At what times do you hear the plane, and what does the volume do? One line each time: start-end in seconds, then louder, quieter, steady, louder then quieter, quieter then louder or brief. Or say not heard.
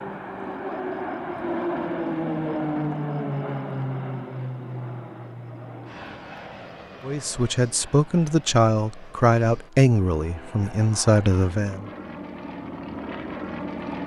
0.0-14.0 quieter then louder.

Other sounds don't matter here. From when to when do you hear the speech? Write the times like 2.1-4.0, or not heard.
7.0-11.9.